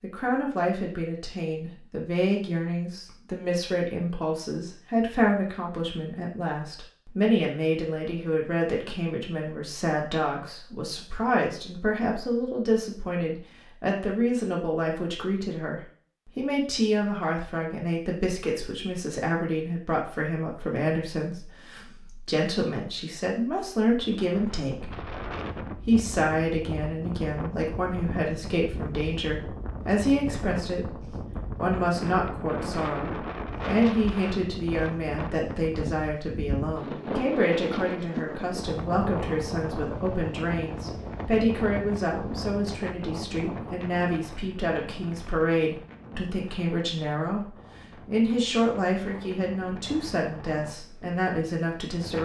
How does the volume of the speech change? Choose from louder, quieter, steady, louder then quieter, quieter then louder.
steady.